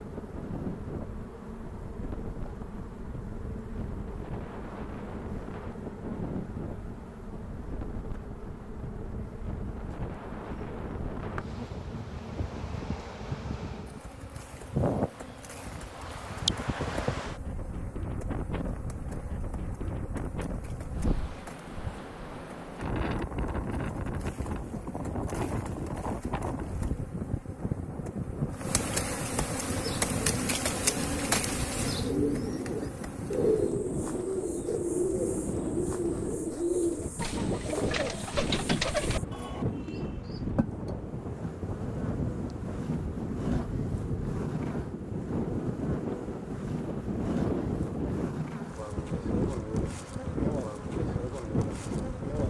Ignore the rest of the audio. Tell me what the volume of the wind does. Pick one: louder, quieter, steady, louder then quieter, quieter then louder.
louder.